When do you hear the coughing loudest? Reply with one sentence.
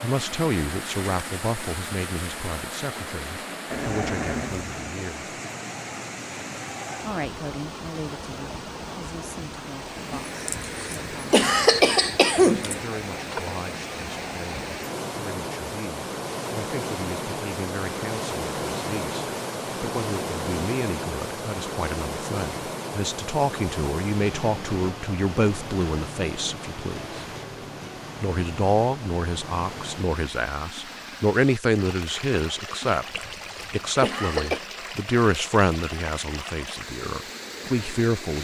The loudest moment of the coughing is at 12 seconds.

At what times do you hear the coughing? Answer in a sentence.
You can hear the coughing from 10.1 to 12.8 s and from 32.9 to 34.6 s.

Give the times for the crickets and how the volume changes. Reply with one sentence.
You can't hear the crickets here.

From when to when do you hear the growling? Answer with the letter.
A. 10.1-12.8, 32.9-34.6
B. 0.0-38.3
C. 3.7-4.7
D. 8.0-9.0
C.